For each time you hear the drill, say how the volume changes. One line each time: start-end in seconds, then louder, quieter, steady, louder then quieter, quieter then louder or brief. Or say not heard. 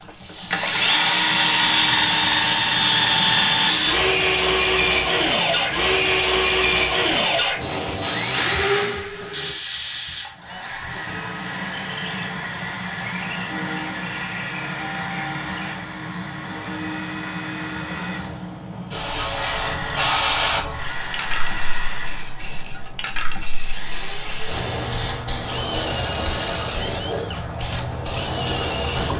0.1-29.1 quieter.